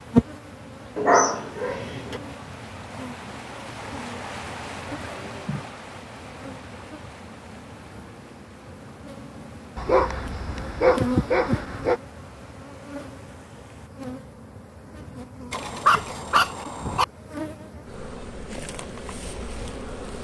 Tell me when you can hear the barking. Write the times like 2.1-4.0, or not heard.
0.9-2.2, 9.8-12.0, 15.5-17.1.